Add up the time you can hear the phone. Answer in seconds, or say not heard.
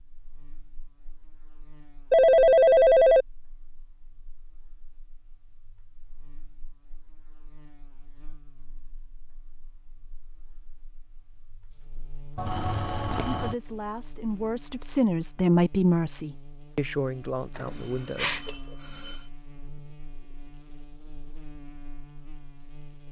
4 s.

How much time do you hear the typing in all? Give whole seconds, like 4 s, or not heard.
not heard.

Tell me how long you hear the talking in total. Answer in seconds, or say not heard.
5 s.